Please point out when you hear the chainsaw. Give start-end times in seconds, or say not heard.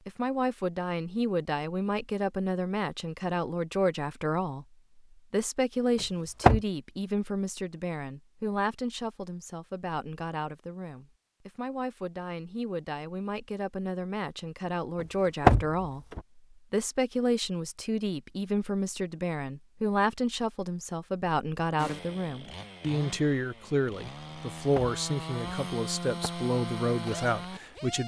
21.8-28.0.